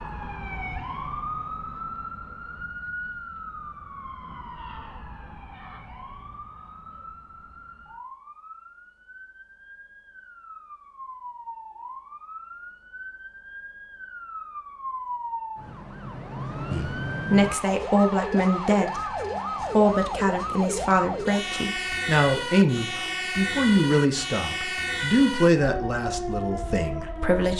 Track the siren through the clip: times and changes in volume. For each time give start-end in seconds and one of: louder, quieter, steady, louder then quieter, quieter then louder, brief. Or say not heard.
0.0-27.5 quieter then louder.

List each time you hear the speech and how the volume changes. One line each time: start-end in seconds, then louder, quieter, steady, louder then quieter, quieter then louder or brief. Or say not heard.
16.7-27.5 steady.